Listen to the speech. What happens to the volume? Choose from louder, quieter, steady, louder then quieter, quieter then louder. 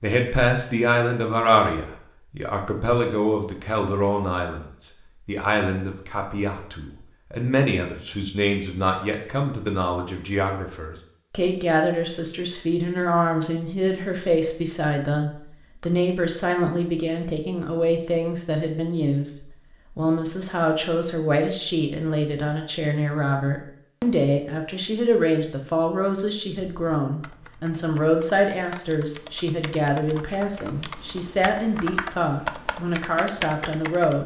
steady.